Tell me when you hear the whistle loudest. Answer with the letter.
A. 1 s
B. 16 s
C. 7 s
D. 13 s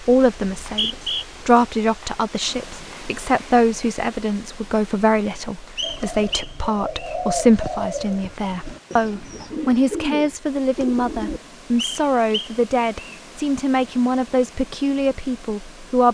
A.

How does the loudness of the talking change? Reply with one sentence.
The loudness of the talking stays about the same.